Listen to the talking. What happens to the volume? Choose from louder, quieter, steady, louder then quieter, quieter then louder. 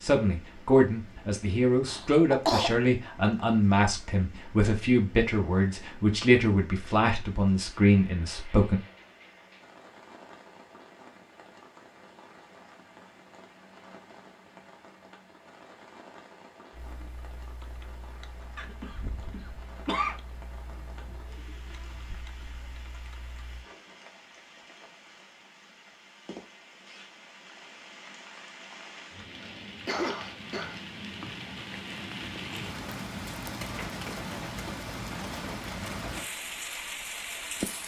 steady.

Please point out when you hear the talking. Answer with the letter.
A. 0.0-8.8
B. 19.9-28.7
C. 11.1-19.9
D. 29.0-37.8
A.